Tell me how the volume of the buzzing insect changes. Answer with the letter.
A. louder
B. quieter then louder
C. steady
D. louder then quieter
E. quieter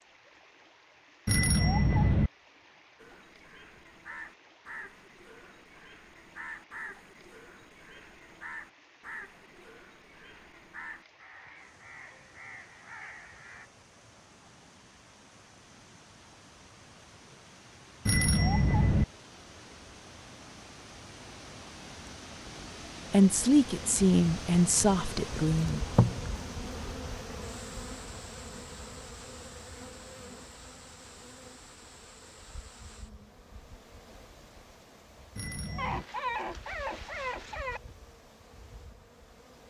E.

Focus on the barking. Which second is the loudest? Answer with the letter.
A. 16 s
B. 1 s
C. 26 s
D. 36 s
D.